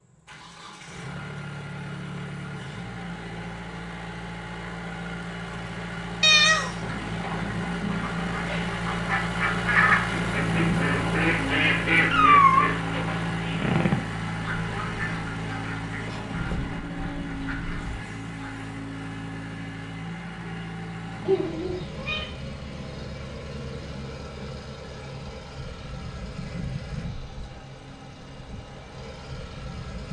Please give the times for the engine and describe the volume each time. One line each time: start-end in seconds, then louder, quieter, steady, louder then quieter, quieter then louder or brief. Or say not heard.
0.0-30.0 louder then quieter.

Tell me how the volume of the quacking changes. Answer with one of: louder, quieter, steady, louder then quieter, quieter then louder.
quieter.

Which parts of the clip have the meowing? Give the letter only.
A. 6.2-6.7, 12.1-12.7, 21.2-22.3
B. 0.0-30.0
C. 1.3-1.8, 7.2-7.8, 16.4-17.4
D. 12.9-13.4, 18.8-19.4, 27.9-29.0
A.